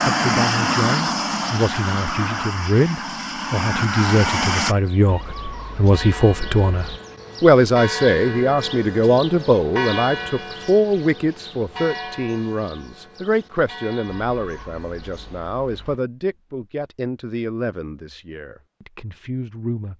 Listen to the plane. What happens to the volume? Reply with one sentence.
The volume of the plane goes down, then up.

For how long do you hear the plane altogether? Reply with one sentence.
You can hear the plane for 5 seconds altogether.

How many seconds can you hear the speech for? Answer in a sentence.
The speech can be heard for 20 seconds in total.